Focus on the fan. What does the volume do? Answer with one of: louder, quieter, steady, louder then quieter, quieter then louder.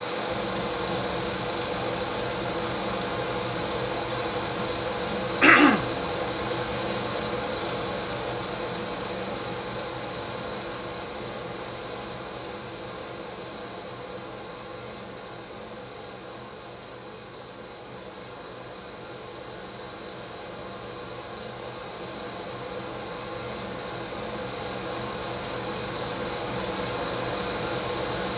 quieter then louder.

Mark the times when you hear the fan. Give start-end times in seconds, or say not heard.
0.0-28.3.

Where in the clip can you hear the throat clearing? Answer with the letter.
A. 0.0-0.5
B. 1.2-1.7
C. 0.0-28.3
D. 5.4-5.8
D.